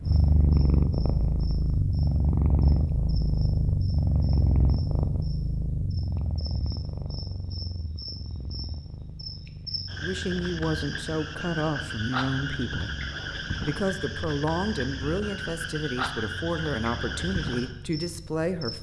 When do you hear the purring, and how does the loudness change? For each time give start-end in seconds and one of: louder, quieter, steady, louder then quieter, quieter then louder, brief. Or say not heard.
0.0-18.7 quieter.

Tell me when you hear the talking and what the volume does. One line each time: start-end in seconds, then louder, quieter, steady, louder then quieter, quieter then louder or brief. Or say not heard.
9.9-18.7 steady.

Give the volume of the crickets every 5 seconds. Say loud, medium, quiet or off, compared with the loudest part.
quiet, medium, loud, loud.